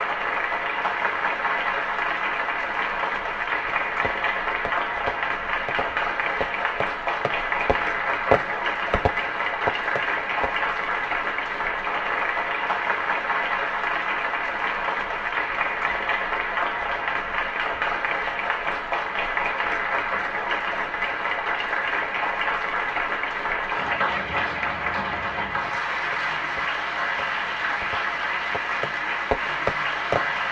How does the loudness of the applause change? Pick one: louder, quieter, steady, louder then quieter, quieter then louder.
steady.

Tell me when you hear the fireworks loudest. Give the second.
8 s.